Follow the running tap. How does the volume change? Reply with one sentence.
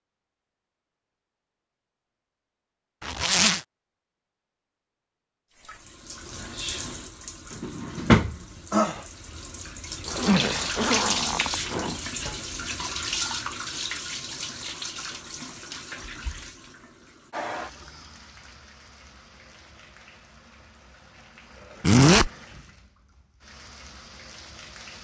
The loudness of the running tap goes down.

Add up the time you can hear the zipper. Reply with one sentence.
You can hear the zipper for 3 seconds altogether.